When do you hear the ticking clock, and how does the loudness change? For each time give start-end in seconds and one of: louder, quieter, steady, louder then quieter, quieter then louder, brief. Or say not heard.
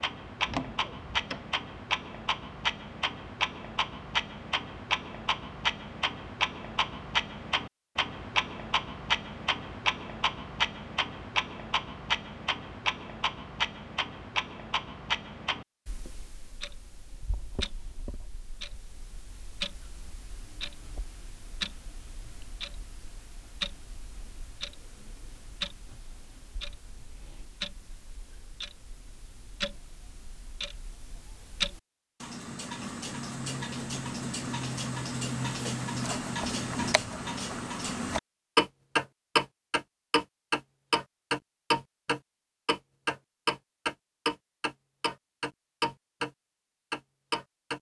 0.0-46.3 quieter then louder
46.9-47.7 brief.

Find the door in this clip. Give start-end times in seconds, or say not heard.
0.5-1.5.